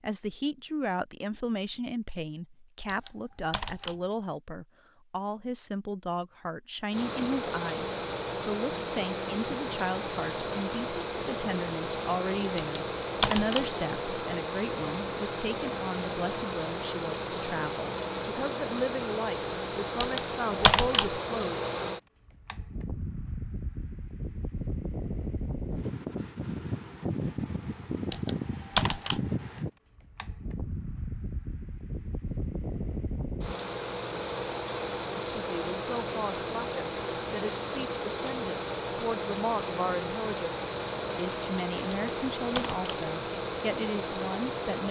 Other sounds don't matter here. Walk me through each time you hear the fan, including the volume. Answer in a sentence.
The fan can be heard from 6.9 to 44.8 s, at a steady volume.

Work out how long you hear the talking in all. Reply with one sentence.
You can hear the talking for 31 seconds altogether.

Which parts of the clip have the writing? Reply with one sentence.
You can't hear the writing here.